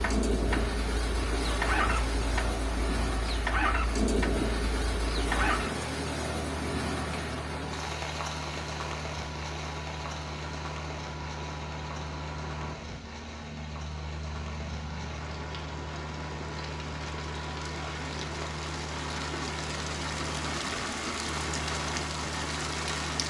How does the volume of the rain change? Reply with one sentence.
The volume of the rain goes down, then up.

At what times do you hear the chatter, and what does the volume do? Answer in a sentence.
You can't hear the chatter here.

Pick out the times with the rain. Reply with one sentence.
You can hear the rain from 0.0 to 23.2 s.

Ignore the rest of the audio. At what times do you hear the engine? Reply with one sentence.
The engine can be heard from 0.0 to 23.2 s.